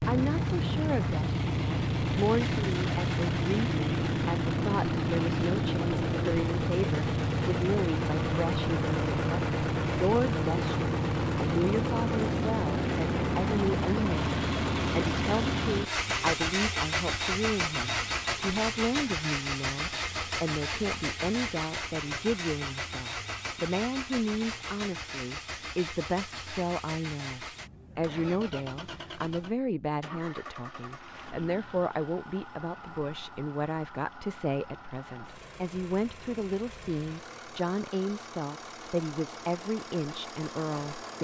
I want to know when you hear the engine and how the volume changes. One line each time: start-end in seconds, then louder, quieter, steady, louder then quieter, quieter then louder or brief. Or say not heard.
0.0-41.1 quieter.